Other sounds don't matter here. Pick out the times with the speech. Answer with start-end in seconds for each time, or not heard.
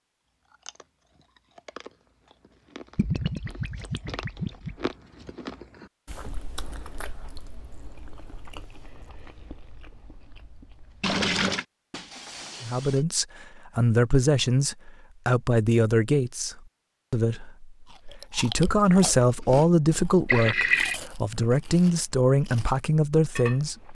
12.6-23.8.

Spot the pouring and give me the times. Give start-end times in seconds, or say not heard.
3.0-4.9, 11.0-11.7, 20.2-21.0.